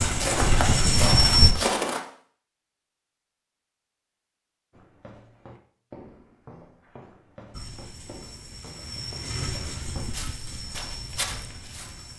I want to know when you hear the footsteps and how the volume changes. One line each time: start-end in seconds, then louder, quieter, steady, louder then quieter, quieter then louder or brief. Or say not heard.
0.0-2.0 brief
4.7-12.1 louder.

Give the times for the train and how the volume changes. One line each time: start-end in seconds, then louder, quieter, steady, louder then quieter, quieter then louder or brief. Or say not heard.
0.0-1.6 brief
7.5-12.1 louder then quieter.